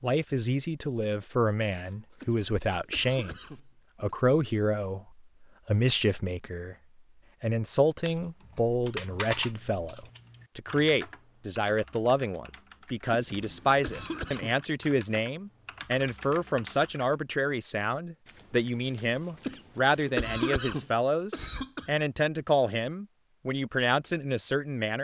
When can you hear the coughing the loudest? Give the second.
20 s.